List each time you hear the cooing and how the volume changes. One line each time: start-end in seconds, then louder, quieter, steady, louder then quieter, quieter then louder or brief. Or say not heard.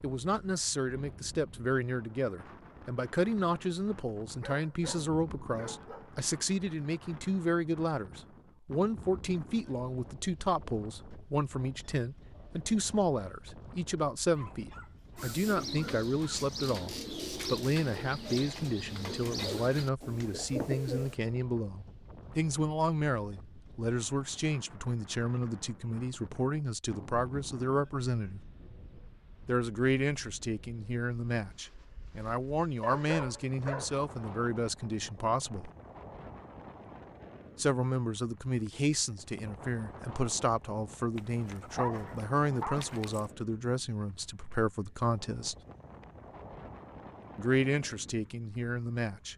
15.2-21.1 steady.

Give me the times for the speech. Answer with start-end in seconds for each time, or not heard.
0.0-28.4, 29.4-35.7, 37.5-45.5, 47.4-49.3.